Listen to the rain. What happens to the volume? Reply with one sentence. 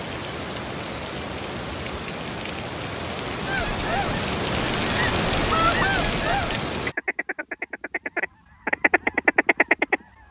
The volume of the rain goes up.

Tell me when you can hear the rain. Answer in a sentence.
You can hear the rain from 0.0 to 7.0 s.